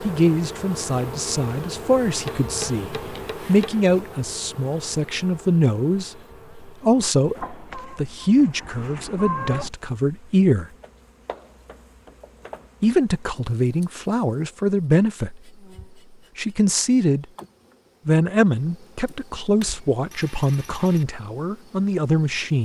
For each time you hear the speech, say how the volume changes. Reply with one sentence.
The speech can be heard from 0.0 to 10.7 s, at a steady volume; briefly from 12.8 to 15.4 s; briefly from 16.4 to 17.2 s; and from 18.1 to 22.6 s, at a steady volume.